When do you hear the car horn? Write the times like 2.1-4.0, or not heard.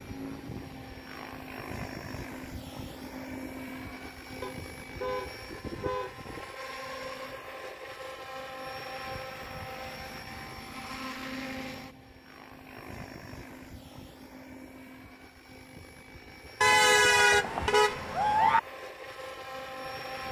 4.4-6.2, 16.6-18.6.